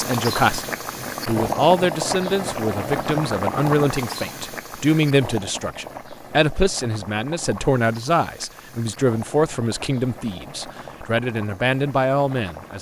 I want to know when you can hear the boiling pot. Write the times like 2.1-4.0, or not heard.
0.0-12.7.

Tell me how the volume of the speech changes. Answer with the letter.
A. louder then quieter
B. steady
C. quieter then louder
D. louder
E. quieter
B.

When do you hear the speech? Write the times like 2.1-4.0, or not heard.
0.0-12.7.